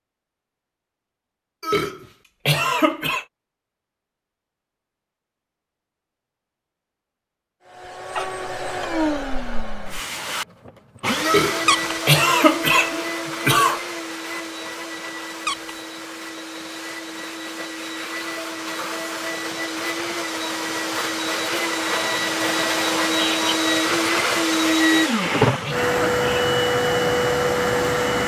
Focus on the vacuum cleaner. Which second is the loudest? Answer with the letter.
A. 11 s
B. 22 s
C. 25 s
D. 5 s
C.